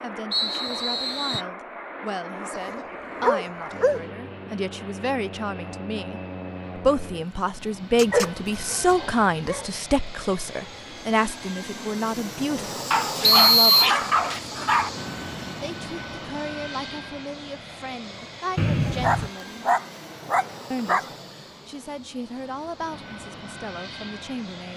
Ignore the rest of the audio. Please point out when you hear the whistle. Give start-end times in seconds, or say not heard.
0.3-1.4, 13.2-13.9, 18.6-19.3.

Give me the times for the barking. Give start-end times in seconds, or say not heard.
2.5-4.0, 8.0-9.7, 12.9-14.9, 19.0-21.1.